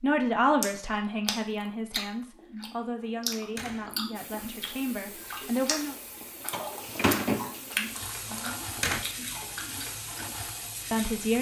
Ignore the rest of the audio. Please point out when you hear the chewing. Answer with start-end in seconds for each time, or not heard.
0.6-10.5.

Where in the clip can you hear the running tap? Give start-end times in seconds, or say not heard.
4.2-11.3.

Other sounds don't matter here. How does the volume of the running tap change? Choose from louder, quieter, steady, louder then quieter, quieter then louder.
louder then quieter.